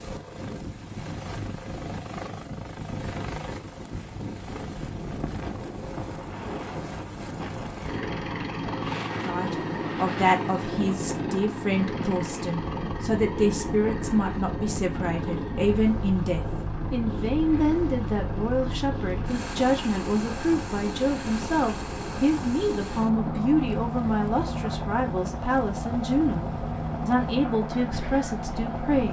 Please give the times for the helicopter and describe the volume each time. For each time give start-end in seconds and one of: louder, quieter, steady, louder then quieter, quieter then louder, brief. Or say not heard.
0.0-29.0 louder.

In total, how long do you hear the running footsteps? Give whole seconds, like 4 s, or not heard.
not heard.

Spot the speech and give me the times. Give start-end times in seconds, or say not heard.
9.2-29.0.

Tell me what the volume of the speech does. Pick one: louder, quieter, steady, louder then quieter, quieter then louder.
steady.